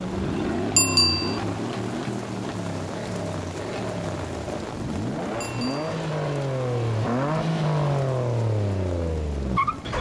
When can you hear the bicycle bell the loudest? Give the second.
1 s.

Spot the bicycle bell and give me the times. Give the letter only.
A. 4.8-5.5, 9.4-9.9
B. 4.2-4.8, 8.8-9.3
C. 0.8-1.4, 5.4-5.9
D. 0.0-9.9
C.